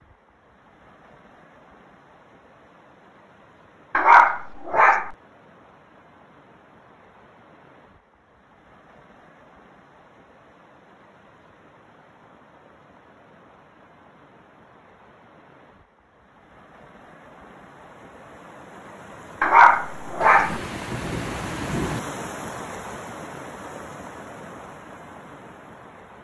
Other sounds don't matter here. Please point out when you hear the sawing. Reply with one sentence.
You can't hear the sawing here.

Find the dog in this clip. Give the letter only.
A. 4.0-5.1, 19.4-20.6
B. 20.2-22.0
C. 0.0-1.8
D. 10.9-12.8
A.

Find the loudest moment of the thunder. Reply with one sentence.
The volume of the thunder peaks at 22 seconds.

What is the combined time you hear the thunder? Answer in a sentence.
You can hear the thunder for 2 seconds altogether.